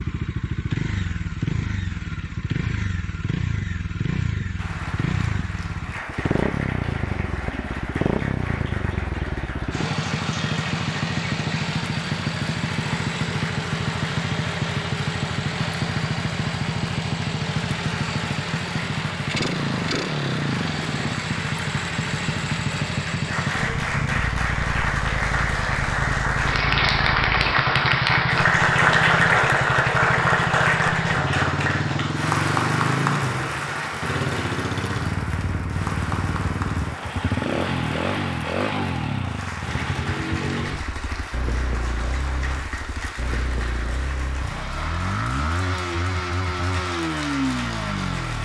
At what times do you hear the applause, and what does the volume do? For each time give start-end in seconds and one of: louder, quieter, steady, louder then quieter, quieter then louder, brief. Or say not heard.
4.5-48.4 louder then quieter.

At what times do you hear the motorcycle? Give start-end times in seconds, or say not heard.
0.0-48.4.